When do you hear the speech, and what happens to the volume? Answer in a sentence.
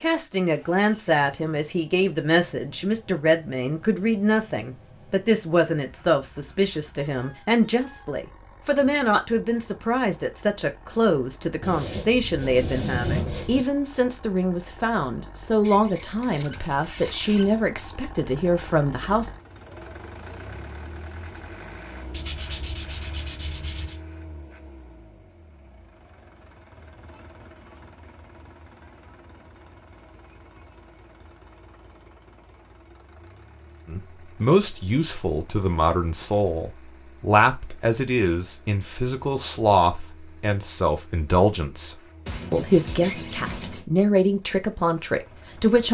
The speech can be heard from 0.0 to 19.3 s, at a steady volume; and from 33.9 to 45.8 s, at a steady volume.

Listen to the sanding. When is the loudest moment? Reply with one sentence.
The volume of the sanding peaks at 13 seconds.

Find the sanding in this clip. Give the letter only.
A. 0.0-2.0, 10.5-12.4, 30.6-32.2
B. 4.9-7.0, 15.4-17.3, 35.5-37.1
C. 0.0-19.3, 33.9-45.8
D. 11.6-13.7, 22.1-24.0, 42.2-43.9
D.